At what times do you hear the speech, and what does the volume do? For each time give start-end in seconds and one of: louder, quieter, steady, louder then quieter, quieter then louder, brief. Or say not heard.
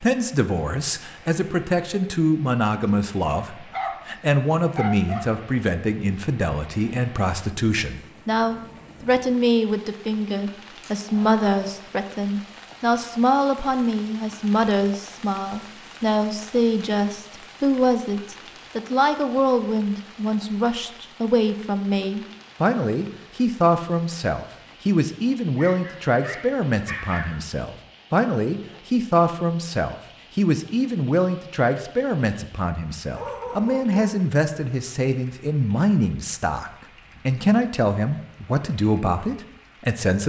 0.0-40.2 steady.